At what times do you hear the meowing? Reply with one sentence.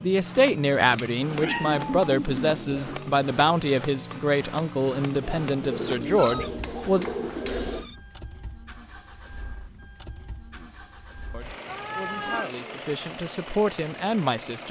The meowing can be heard from 0.9 to 2.1 s, from 5.7 to 8.0 s and from 11.7 to 12.5 s.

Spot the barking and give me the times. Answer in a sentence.
You can't hear the barking here.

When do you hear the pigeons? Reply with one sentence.
You can hear the pigeons from 1.3 to 3.0 s, from 5.2 to 7.8 s and from 11.4 to 12.7 s.